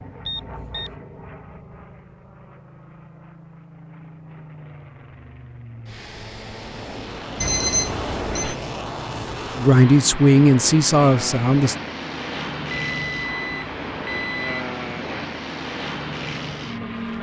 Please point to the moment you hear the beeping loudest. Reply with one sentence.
The volume of the beeping peaks at 8 seconds.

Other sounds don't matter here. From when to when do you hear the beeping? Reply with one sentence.
The beeping can be heard from 0.2 to 0.9 s, from 7.4 to 8.6 s and from 12.7 to 14.7 s.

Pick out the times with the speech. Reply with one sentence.
The speech can be heard from 9.6 to 11.8 s.